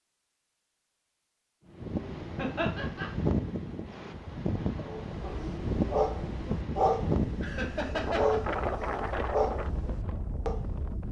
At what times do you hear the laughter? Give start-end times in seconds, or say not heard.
2.4-3.1, 7.4-8.4.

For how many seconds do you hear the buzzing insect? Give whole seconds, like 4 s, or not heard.
not heard.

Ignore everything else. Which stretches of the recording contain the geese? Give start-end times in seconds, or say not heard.
not heard.